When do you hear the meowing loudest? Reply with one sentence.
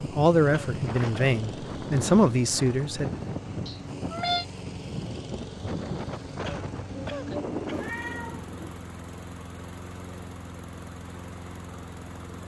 The volume of the meowing peaks at 4 seconds.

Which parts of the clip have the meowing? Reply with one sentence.
The meowing can be heard from 3.6 to 4.5 s and from 6.8 to 8.7 s.